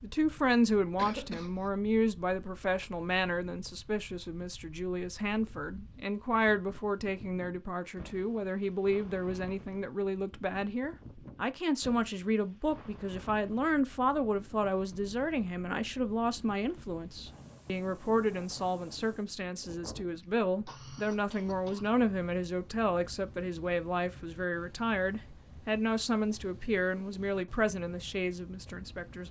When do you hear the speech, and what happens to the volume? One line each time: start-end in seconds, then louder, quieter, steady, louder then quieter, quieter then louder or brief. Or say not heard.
0.0-29.2 steady.